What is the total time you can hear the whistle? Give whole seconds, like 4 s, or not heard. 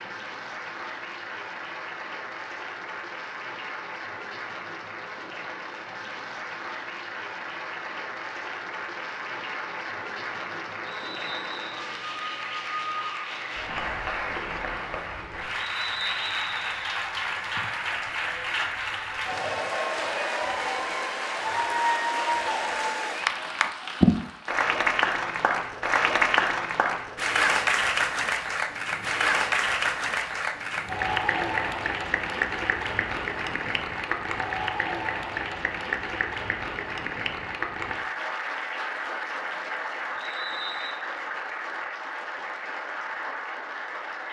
3 s.